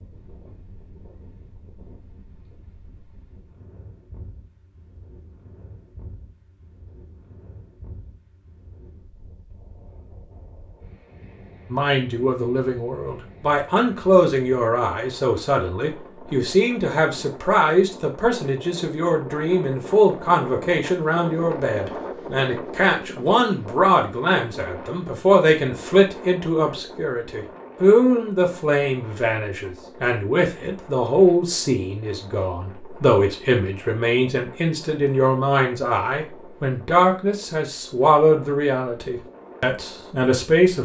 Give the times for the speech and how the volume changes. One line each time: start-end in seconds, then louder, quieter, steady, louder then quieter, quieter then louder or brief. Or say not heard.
11.7-40.8 steady.